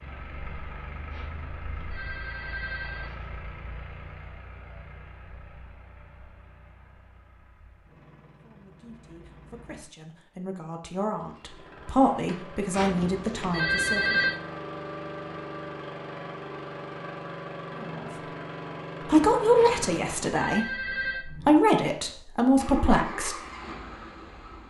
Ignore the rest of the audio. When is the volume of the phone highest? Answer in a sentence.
The loudest moment of the phone is at 14 seconds.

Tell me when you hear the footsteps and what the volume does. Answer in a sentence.
The footsteps can't be heard in this clip.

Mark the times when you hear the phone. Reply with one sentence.
The phone can be heard from 1.1 to 3.4 s, from 12.7 to 14.3 s and from 19.6 to 21.2 s.